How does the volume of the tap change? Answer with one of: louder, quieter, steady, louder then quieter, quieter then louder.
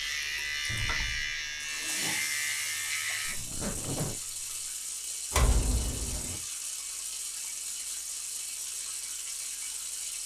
steady.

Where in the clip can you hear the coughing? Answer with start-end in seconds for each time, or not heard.
not heard.